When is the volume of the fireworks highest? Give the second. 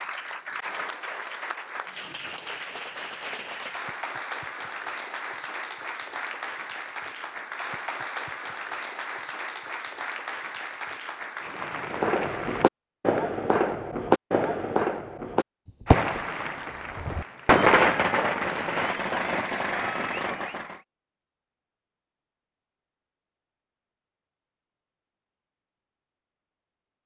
18 s.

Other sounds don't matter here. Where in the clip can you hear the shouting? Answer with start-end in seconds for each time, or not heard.
not heard.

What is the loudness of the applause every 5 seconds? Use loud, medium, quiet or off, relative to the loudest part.
loud, loud, loud, loud, off, off.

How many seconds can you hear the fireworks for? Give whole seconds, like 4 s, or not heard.
9 s.